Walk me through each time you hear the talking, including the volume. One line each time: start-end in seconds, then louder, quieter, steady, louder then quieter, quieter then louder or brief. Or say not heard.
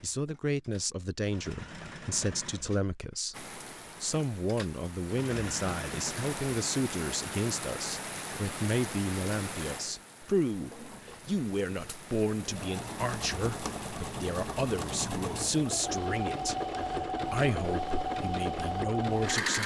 0.0-19.6 steady.